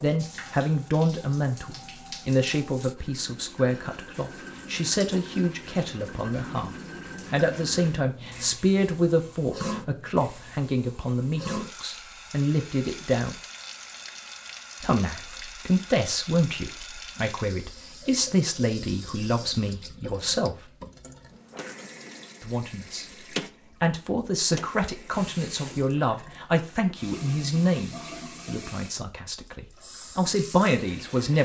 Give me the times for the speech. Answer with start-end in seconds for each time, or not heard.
0.0-13.3, 14.8-20.6, 22.4-23.1, 23.8-31.3.